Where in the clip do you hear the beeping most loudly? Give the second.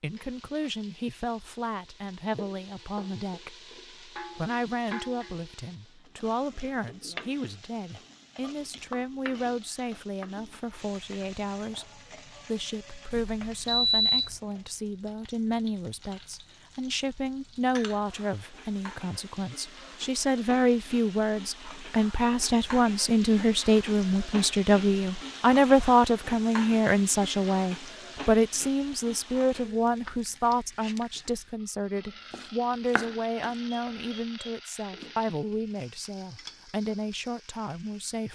14 s.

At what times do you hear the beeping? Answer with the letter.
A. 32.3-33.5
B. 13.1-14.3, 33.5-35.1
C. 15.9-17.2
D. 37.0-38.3
B.